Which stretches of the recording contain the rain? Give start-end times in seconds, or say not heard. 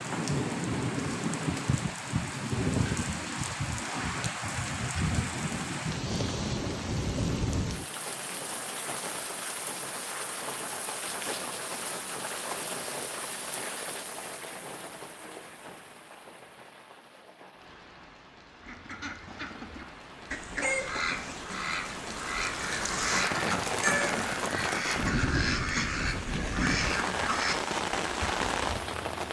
0.0-29.2.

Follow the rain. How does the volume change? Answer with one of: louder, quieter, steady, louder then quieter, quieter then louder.
quieter then louder.